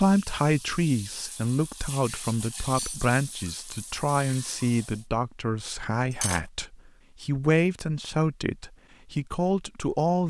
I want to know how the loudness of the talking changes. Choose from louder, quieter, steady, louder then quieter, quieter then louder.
steady.